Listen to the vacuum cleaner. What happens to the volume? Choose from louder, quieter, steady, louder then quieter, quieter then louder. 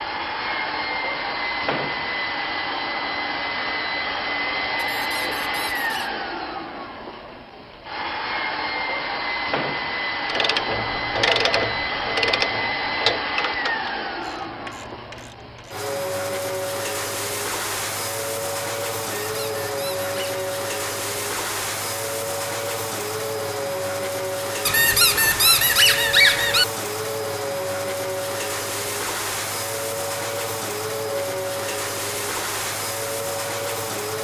steady.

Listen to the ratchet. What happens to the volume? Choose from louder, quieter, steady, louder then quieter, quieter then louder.
quieter.